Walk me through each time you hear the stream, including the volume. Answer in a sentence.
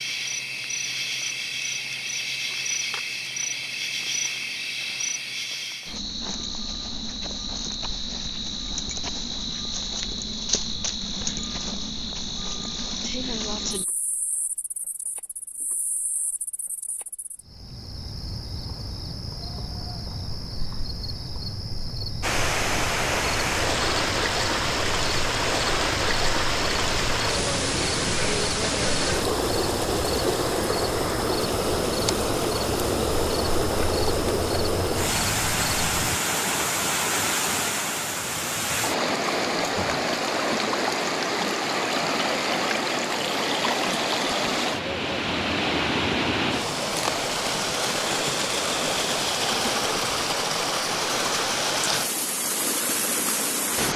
The stream can be heard from 22.2 to 53.9 s, at a steady volume.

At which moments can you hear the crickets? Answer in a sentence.
The crickets can be heard from 0.0 to 36.2 s.